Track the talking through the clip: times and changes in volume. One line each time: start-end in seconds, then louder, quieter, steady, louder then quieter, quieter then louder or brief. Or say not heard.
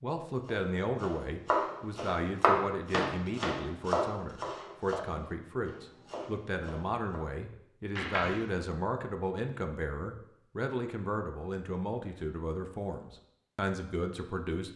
0.0-14.7 steady.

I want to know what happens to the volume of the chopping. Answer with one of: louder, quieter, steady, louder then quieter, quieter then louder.
quieter.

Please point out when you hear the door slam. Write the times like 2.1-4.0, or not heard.
8.0-8.5.